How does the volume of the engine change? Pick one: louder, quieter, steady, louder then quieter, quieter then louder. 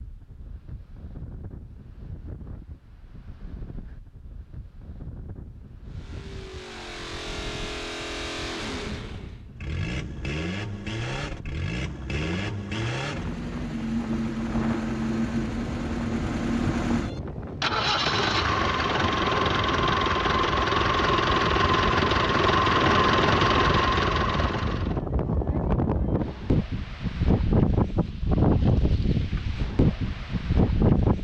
louder.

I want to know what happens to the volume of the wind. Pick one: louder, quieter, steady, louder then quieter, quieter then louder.
louder.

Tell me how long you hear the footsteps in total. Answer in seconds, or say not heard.
not heard.